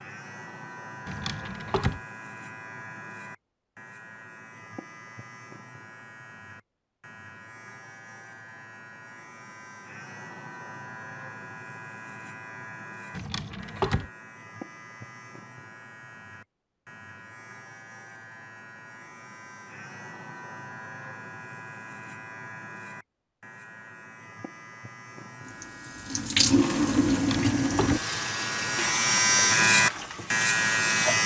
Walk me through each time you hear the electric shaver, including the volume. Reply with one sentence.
You can hear the electric shaver from 0.0 to 31.2 s, getting louder.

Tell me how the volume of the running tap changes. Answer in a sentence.
The loudness of the running tap goes down.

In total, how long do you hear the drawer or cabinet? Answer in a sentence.
You can hear the drawer or cabinet for 3 seconds altogether.